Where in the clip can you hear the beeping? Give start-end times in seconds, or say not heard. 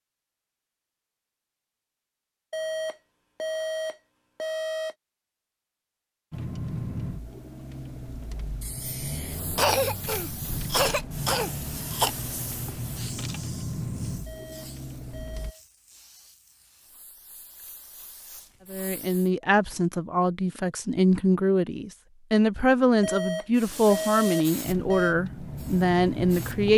2.5-5.0, 14.2-15.6, 23.0-25.1.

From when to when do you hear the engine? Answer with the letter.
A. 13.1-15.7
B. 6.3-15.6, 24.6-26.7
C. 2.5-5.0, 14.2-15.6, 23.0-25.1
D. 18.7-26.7
B.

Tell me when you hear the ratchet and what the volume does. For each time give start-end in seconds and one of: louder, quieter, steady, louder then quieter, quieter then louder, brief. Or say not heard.
not heard.